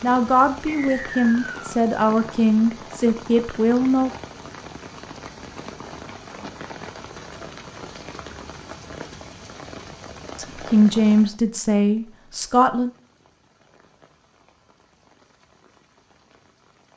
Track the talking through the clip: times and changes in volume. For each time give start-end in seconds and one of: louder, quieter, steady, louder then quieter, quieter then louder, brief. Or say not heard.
0.0-4.1 steady
10.3-12.9 brief.